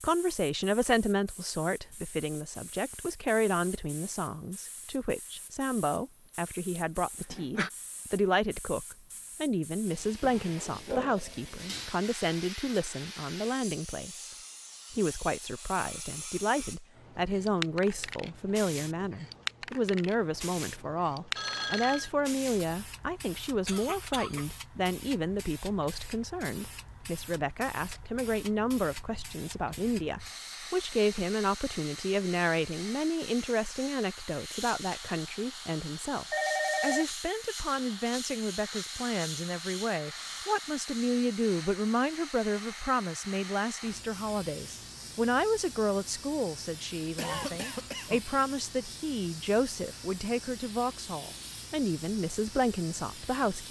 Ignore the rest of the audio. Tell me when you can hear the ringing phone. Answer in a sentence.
You can hear the ringing phone from 21.4 to 22.1 s and from 36.3 to 37.0 s.